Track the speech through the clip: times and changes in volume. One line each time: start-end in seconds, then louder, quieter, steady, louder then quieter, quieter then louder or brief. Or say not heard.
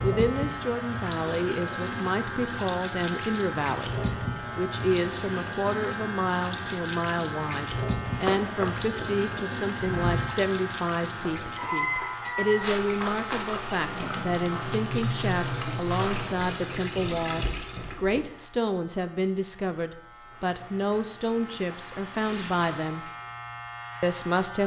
0.0-23.1 steady
24.0-24.6 brief.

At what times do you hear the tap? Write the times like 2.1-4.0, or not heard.
0.0-18.0, 20.1-23.4.